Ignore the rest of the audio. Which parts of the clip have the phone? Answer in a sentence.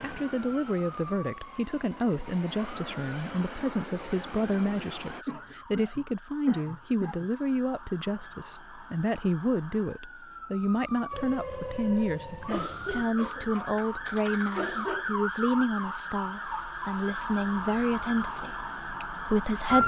You can hear the phone from 11.1 to 13.1 s.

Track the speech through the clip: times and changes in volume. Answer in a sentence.
The speech can be heard from 0.0 to 19.8 s, at a steady volume.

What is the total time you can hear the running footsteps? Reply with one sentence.
You can't hear the running footsteps here.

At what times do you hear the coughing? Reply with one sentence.
You can hear the coughing from 5.1 to 7.3 s and from 12.4 to 15.1 s.